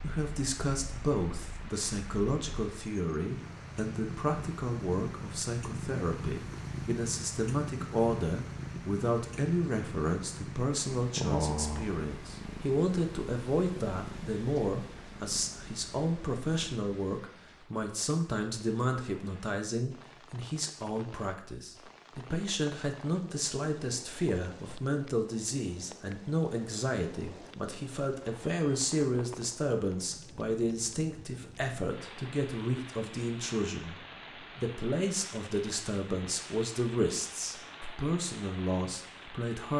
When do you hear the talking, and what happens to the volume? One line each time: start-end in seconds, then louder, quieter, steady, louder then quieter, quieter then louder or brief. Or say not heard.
0.0-39.7 steady.